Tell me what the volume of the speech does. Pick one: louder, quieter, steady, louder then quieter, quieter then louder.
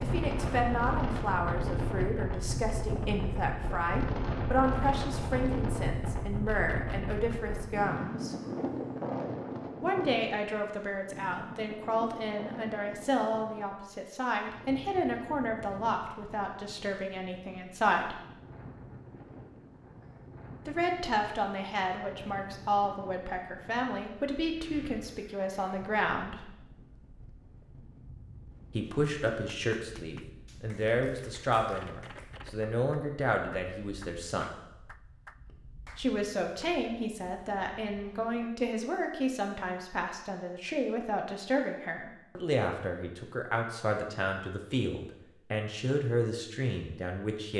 steady.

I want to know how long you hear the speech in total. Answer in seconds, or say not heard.
40 s.